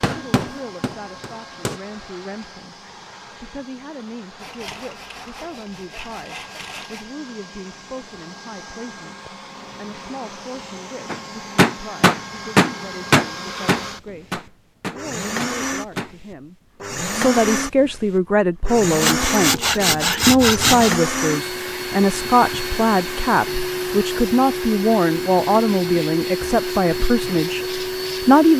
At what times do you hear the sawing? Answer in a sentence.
The sawing can be heard from 4.3 to 7.2 s and from 19.0 to 20.9 s.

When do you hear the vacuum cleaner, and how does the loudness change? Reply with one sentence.
You can hear the vacuum cleaner from 0.0 to 28.5 s, getting louder.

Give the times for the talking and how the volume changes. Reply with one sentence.
You can hear the talking from 0.1 to 28.5 s, getting louder.